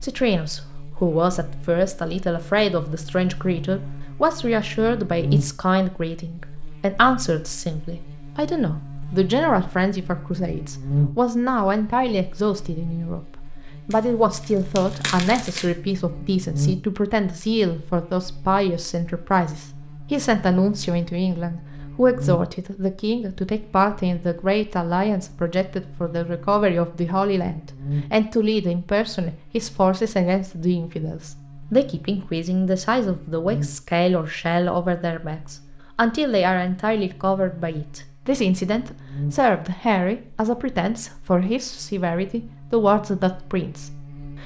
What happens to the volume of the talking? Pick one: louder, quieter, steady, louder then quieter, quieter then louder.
steady.